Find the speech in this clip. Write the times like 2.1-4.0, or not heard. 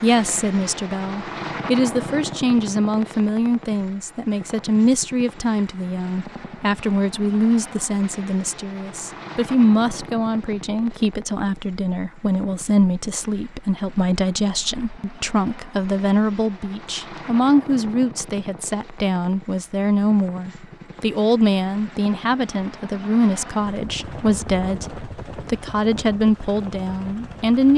0.0-27.7.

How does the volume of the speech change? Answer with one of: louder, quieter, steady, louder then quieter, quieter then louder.
steady.